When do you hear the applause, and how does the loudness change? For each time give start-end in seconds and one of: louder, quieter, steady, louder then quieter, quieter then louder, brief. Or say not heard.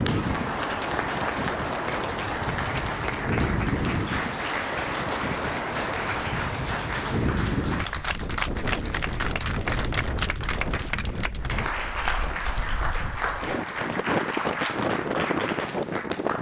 0.0-16.3 steady.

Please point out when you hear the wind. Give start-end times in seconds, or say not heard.
0.0-16.3.